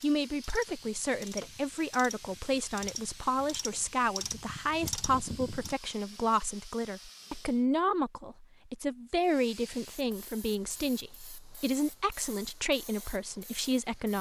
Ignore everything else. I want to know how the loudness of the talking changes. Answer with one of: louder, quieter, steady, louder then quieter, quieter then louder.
steady.